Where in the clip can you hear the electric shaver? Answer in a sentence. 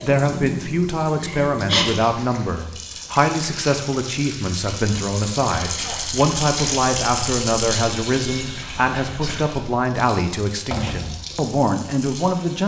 The electric shaver can't be heard in this clip.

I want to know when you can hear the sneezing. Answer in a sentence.
You can hear the sneezing from 1.1 to 1.9 s, from 5.6 to 6.0 s and from 9.0 to 9.5 s.